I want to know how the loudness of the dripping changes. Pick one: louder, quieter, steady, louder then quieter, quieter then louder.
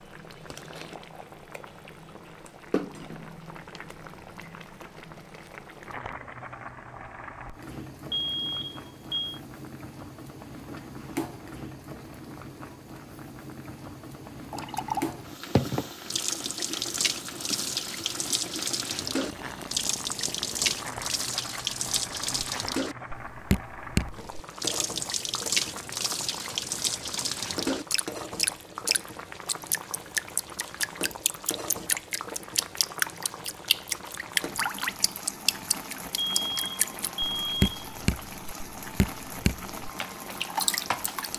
steady.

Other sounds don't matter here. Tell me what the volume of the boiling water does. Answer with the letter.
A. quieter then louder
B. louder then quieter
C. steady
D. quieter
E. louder
C.